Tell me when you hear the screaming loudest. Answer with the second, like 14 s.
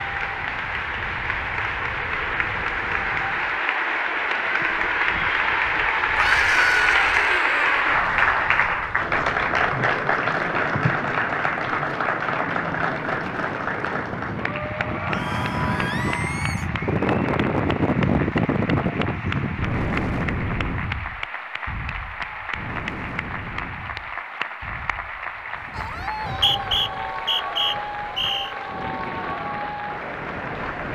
7 s.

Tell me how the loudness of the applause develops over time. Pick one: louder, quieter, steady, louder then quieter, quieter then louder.
quieter.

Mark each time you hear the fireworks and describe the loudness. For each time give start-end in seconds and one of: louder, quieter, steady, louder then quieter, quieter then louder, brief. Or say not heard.
not heard.